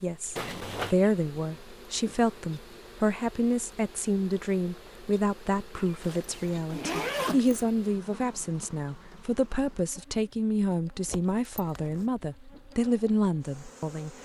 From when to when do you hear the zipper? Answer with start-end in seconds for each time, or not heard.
0.3-0.9, 5.8-7.7, 11.1-12.1.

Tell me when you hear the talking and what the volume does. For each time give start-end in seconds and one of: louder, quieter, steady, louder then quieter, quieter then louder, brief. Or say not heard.
0.0-14.1 steady.